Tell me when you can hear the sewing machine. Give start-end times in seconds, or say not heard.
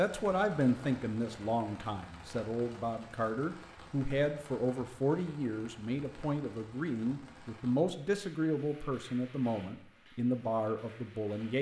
not heard.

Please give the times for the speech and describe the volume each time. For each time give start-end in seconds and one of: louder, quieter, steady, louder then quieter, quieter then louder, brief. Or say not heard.
0.0-11.5 steady.